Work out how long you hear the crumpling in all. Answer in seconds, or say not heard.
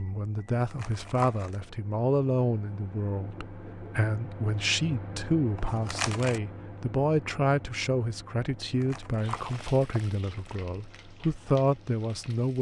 4 s.